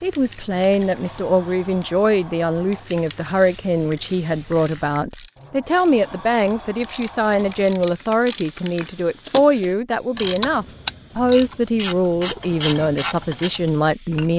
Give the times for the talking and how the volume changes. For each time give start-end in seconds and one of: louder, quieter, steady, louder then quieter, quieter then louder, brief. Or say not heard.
0.0-14.3 steady.